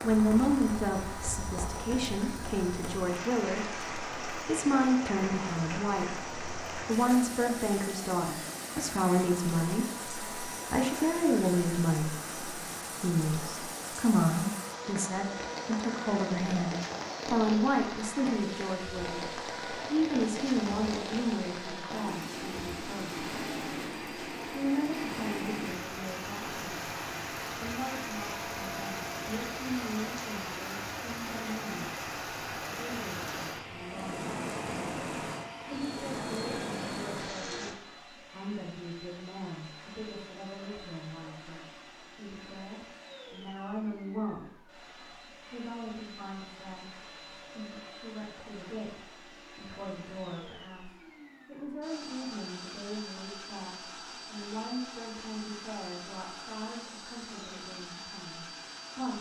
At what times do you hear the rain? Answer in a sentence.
You can hear the rain from 0.0 to 37.8 s.